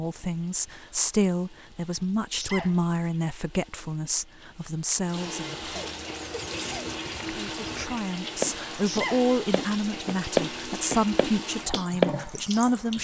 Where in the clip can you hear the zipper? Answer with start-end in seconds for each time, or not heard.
not heard.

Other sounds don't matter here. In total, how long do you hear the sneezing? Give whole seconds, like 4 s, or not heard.
2 s.